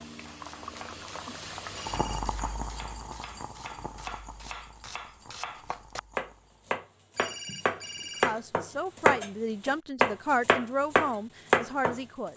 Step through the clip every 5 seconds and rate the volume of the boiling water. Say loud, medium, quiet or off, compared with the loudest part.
loud, quiet, off.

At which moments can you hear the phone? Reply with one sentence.
The phone can be heard from 1.7 to 2.3 s and from 7.2 to 8.3 s.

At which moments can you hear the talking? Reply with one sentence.
The talking can be heard from 8.1 to 12.3 s.